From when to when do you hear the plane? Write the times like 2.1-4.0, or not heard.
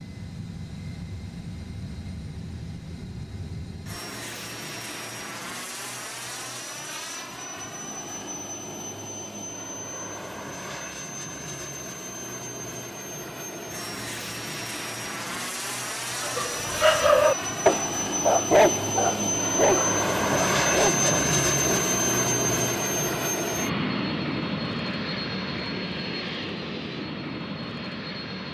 0.0-28.5.